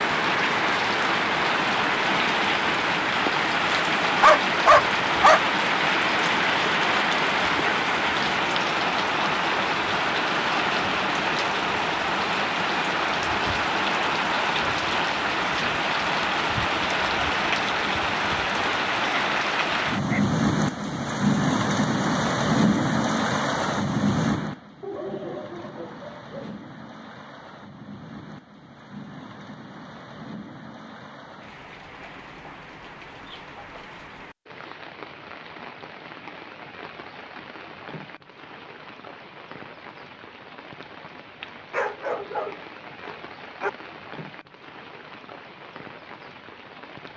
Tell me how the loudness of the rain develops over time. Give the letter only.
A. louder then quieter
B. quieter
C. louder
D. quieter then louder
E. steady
B.